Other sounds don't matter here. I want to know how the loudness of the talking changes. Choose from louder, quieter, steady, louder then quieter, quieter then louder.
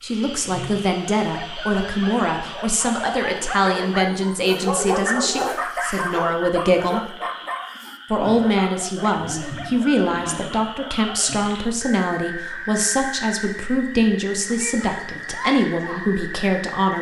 steady.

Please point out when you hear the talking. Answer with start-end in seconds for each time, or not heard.
0.0-7.2, 8.1-16.9.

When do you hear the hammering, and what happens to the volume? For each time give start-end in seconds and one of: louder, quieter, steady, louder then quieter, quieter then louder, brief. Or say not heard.
not heard.